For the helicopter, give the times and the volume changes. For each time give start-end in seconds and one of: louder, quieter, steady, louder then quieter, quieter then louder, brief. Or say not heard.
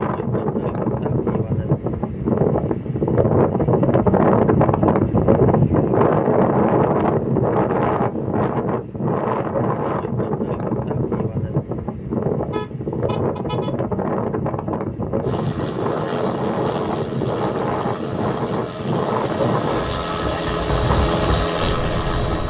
15.2-22.4 louder.